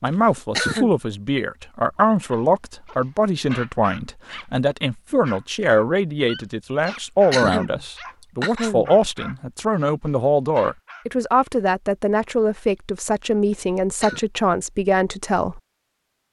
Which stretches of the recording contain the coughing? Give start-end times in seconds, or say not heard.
0.1-0.9, 6.8-8.9, 13.5-14.3.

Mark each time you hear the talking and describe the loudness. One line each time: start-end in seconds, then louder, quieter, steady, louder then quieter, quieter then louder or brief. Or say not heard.
0.0-15.6 steady.